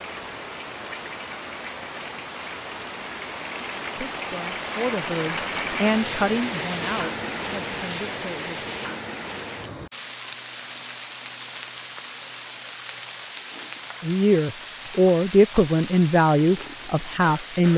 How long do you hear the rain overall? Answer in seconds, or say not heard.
18 s.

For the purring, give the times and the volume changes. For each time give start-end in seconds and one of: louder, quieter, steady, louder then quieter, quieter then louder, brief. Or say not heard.
not heard.